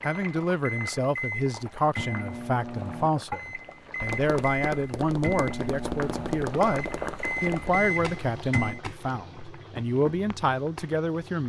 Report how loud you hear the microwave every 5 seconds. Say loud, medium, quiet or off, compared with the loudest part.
loud, loud, off.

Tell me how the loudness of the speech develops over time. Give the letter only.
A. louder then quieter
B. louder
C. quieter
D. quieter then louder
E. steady
E.